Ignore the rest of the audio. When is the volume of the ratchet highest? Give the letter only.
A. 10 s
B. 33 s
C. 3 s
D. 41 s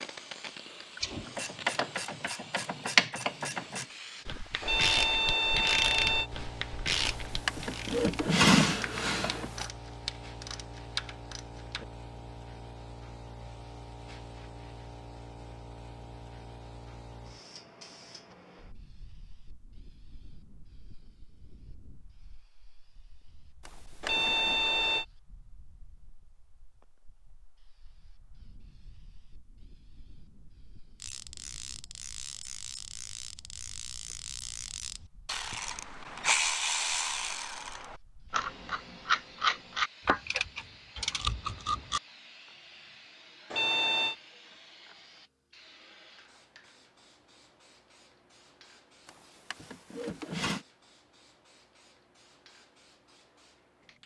C.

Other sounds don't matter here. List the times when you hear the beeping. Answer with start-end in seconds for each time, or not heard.
4.6-6.3, 24.0-25.1, 43.5-44.1.